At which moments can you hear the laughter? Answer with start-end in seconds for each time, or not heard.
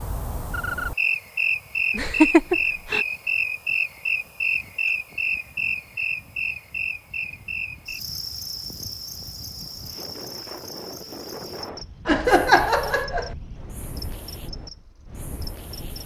1.9-3.0, 12.1-13.3.